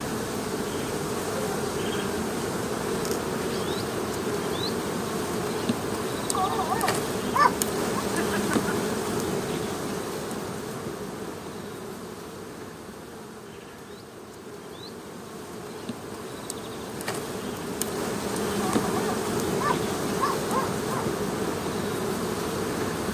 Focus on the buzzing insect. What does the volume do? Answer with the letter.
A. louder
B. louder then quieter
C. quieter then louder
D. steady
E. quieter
C.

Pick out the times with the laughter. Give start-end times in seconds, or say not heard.
8.2-8.8.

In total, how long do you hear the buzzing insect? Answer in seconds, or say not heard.
23 s.